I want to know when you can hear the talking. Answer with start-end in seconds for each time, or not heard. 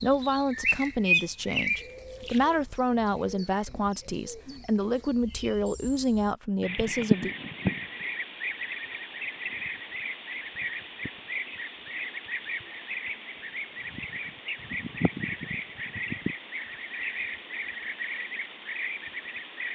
0.0-7.3.